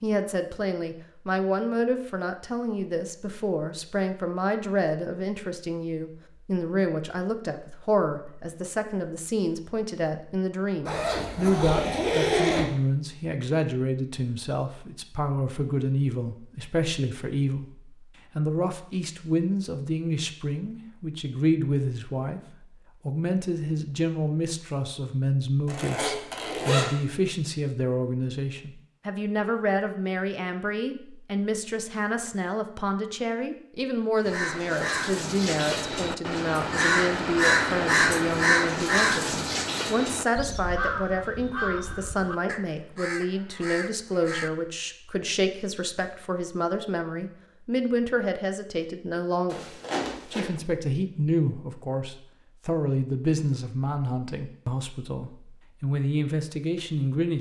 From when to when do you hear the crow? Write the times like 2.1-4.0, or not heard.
34.2-44.5.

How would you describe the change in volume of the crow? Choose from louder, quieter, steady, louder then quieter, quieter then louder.
louder then quieter.